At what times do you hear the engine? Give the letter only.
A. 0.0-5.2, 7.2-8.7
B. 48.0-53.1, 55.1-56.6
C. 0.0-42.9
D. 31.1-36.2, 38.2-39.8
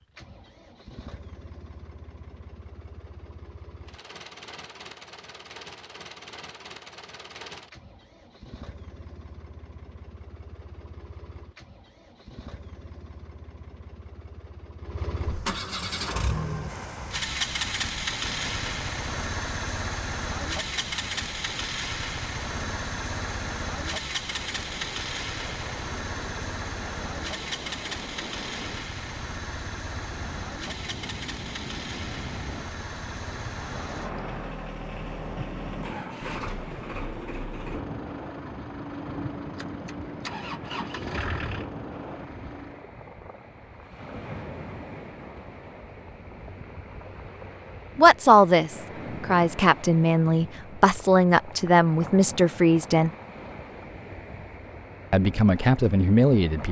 C.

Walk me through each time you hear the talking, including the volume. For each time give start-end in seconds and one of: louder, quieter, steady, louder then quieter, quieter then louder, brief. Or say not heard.
48.0-53.1 steady
55.1-56.6 brief.